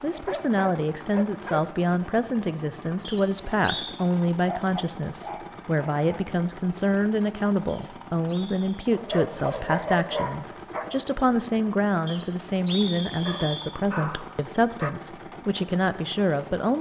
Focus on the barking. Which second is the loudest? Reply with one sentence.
The volume of the barking peaks at 10 seconds.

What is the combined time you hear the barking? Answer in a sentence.
The barking can be heard for 7 seconds in total.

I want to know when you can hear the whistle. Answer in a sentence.
You can hear the whistle from 3.0 to 4.0 s, from 7.7 to 8.8 s and from 12.1 to 13.8 s.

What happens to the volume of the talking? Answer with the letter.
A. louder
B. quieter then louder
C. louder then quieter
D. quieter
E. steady
E.